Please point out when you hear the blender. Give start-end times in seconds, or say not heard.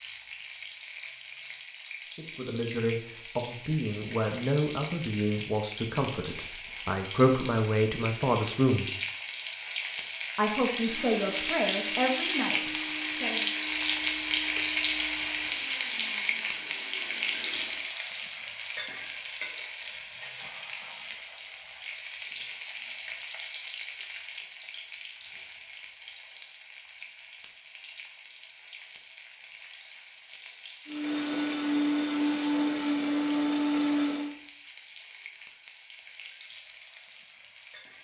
10.8-17.9, 30.9-34.4.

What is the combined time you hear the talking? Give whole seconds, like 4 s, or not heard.
10 s.